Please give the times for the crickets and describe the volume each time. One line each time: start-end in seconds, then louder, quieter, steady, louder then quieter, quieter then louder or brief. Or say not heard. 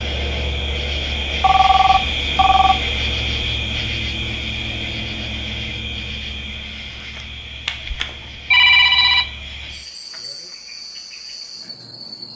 0.0-12.3 quieter.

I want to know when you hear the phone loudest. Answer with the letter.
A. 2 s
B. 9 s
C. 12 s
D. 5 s
B.